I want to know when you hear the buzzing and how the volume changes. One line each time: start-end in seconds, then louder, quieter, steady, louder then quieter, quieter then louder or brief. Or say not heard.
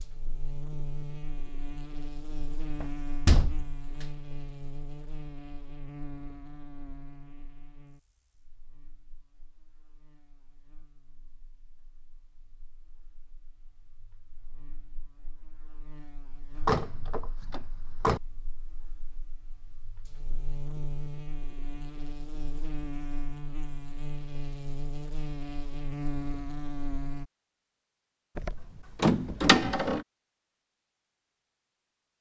0.0-27.2 quieter then louder.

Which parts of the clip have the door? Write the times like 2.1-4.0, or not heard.
2.8-4.0, 16.6-18.2, 28.4-30.0.